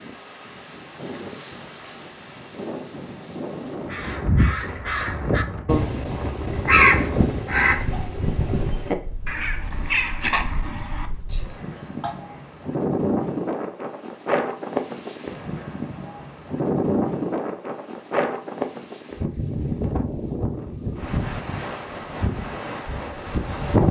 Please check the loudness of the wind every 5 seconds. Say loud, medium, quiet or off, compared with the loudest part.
medium, medium, loud, loud, loud.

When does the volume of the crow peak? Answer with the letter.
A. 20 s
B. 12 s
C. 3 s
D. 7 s
D.